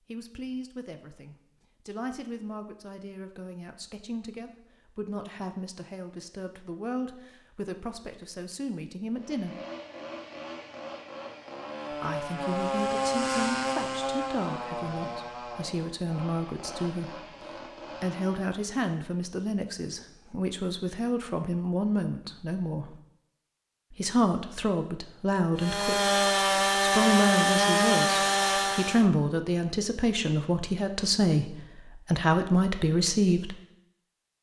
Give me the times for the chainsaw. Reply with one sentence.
You can hear the chainsaw from 9.1 to 18.6 s and from 25.6 to 29.1 s.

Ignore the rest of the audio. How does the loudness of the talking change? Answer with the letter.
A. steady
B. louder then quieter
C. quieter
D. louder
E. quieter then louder
D.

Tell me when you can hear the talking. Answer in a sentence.
The talking can be heard from 0.1 to 9.6 s, from 11.9 to 23.0 s and from 23.9 to 33.5 s.